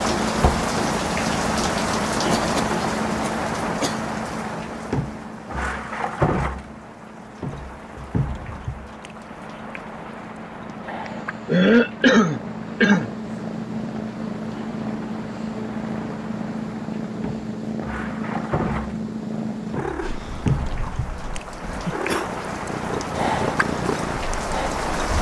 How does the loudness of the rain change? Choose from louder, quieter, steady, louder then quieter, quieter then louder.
quieter then louder.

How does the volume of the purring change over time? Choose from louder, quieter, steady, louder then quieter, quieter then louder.
quieter then louder.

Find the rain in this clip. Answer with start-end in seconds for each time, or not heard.
0.0-25.1.